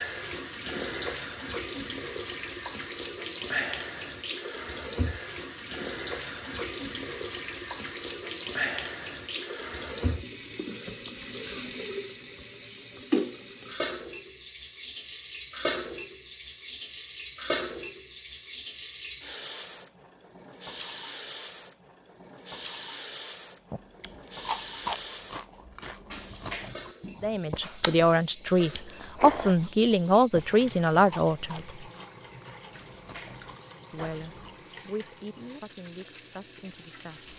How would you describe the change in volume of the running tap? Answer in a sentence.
The loudness of the running tap goes down.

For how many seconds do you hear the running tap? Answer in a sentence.
The running tap can be heard for 37 seconds in total.